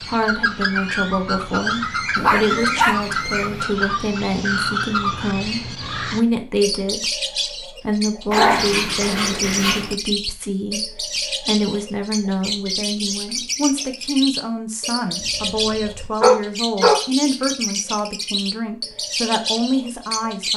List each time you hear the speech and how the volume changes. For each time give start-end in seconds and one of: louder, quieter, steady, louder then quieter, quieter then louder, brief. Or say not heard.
0.0-20.5 steady.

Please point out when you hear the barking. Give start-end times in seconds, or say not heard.
2.1-3.6, 8.3-9.9, 15.2-17.1.